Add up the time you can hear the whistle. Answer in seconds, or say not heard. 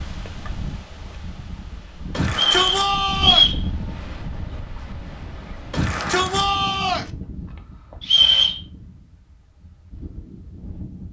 2 s.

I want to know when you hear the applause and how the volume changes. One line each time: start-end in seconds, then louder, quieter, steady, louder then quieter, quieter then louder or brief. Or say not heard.
not heard.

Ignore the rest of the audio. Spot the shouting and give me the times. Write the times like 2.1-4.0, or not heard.
2.1-3.5, 5.7-7.1.